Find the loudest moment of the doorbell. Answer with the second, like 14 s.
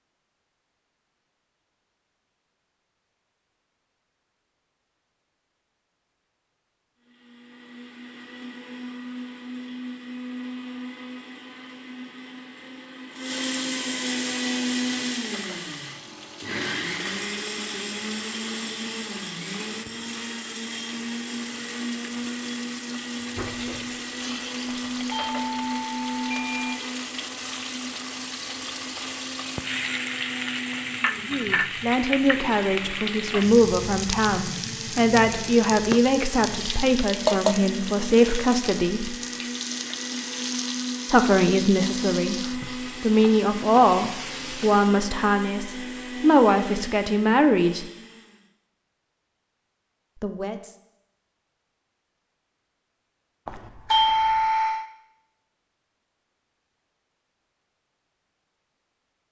54 s.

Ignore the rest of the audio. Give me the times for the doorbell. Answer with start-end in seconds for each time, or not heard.
24.6-26.8, 53.5-54.9.